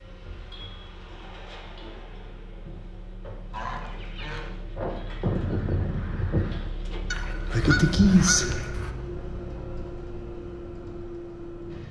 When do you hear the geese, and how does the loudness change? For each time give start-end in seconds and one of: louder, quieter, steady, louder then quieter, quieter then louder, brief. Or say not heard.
3.5-8.9 louder.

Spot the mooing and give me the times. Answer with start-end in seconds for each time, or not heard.
not heard.